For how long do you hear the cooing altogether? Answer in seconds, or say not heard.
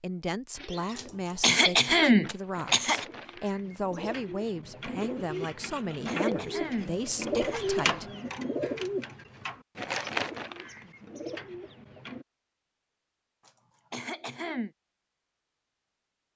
12 s.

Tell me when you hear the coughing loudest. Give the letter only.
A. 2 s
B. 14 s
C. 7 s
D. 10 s
A.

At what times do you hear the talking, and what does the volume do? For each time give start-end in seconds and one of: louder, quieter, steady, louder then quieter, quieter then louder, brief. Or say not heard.
0.0-8.1 steady.